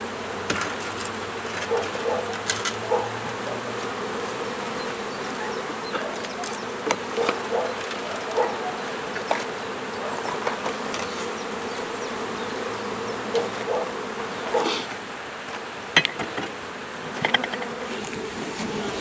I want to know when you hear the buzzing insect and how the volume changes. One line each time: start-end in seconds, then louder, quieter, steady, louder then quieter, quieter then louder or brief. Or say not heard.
0.0-18.9 steady.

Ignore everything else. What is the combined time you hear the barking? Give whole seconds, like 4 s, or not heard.
5 s.